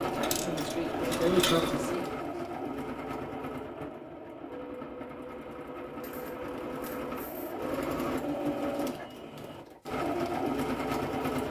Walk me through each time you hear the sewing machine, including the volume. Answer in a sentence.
You can hear the sewing machine from 0.0 to 11.4 s, getting quieter then louder.